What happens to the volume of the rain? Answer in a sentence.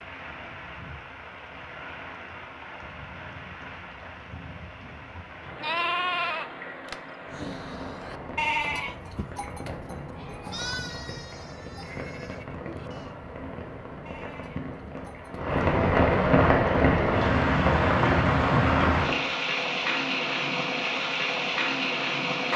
The loudness of the rain goes up.